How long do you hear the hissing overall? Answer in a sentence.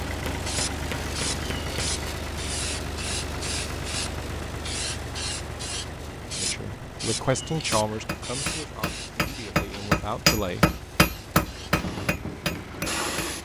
The hissing can be heard for 13 seconds in total.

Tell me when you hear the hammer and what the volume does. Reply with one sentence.
You can hear the hammer briefly from 0.1 to 2.2 s; and from 7.7 to 13.3 s, getting louder then quieter.